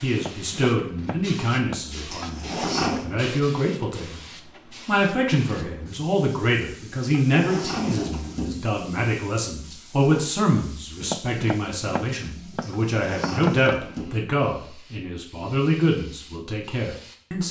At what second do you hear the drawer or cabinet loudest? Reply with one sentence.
The volume of the drawer or cabinet peaks at 3 seconds.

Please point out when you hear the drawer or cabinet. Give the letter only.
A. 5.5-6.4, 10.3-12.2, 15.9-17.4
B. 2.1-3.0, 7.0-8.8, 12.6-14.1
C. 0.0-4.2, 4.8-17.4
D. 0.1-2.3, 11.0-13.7
B.